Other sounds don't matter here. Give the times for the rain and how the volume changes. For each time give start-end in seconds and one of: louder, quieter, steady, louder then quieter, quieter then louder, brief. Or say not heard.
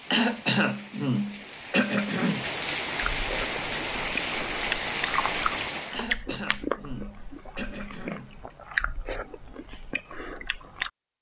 0.0-6.1 louder.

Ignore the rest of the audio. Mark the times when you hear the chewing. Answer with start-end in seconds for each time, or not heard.
3.1-10.9.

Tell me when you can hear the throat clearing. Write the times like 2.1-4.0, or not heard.
0.1-2.5, 5.9-8.6.